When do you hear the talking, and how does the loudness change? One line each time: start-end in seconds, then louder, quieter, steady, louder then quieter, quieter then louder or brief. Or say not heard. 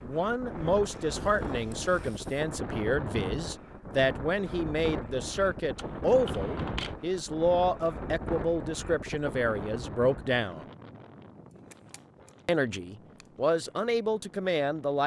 0.0-10.7 steady
12.4-15.0 brief.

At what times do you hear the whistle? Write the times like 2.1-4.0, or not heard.
not heard.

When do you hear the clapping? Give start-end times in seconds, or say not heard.
not heard.